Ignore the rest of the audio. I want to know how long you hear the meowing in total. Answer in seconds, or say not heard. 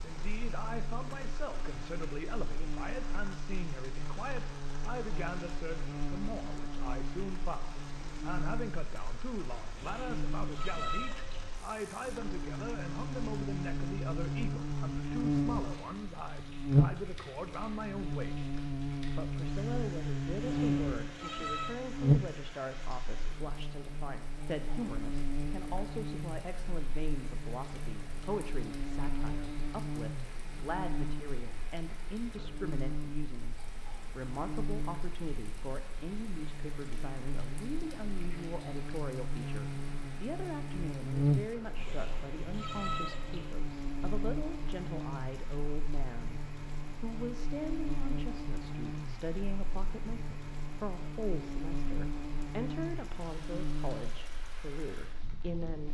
5 s.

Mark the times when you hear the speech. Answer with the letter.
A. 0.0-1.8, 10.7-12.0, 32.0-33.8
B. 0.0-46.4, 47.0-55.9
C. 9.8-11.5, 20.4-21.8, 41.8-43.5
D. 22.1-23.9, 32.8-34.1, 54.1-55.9
B.